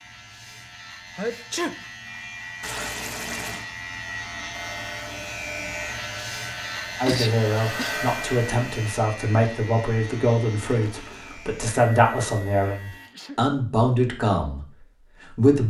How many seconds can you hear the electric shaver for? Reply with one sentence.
The electric shaver can be heard for 13 seconds in total.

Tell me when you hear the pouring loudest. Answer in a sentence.
The volume of the pouring peaks at 3 seconds.